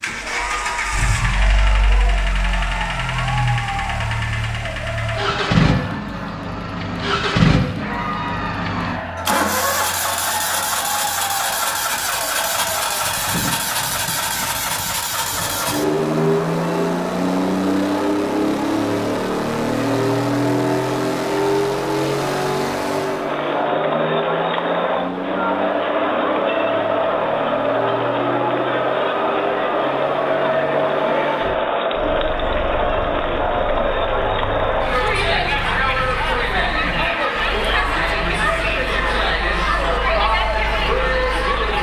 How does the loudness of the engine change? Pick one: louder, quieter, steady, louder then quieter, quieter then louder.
quieter.